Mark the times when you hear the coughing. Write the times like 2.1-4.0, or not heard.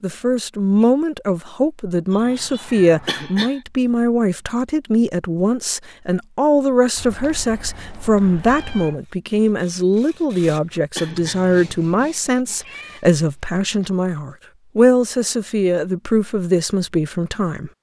3.0-3.6, 10.9-11.5.